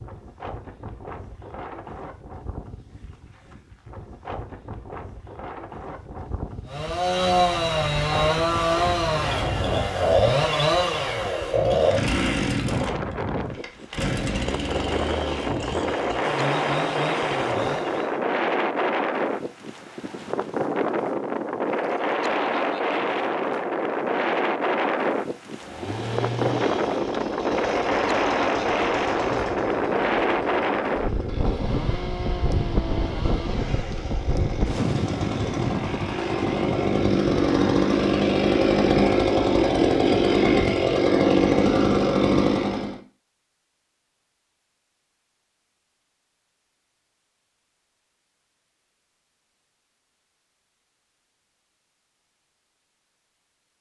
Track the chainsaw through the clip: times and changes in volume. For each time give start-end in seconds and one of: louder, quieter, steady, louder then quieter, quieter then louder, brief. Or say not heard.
6.7-18.2 quieter
25.6-43.0 louder.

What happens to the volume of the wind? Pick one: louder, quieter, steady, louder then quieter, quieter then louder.
louder.